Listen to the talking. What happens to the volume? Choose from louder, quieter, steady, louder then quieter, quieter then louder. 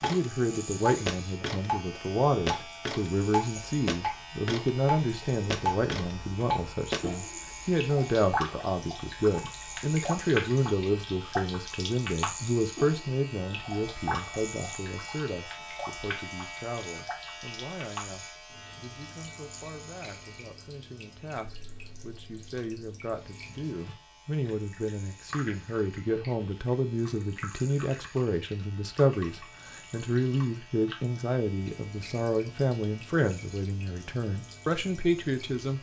quieter then louder.